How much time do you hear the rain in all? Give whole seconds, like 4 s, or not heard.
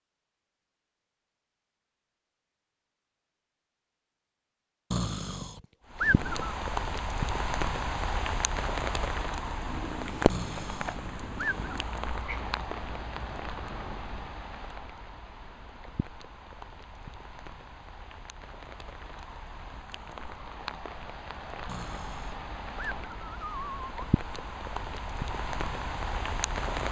21 s.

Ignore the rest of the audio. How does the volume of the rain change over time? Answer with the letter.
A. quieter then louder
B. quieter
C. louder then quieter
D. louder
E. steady
A.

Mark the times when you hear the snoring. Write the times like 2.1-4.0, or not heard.
4.9-6.5, 10.2-11.7, 21.6-23.9.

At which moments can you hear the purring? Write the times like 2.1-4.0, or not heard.
9.2-14.3.